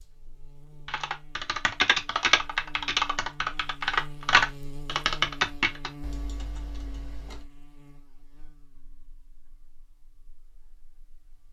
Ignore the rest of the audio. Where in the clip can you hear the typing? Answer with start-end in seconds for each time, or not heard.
0.8-7.5.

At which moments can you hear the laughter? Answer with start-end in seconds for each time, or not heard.
not heard.